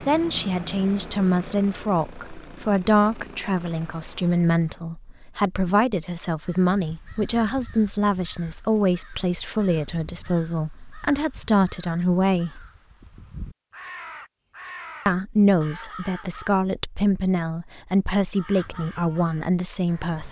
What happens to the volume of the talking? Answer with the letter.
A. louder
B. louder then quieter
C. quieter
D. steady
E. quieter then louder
D.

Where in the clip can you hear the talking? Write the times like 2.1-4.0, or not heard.
0.0-12.7, 15.1-20.2.